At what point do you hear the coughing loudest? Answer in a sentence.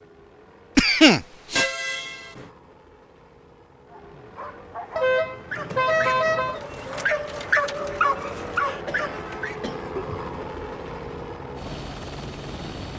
The loudest moment of the coughing is at 1 second.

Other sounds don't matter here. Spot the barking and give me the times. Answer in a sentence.
You can hear the barking from 3.9 to 9.6 s.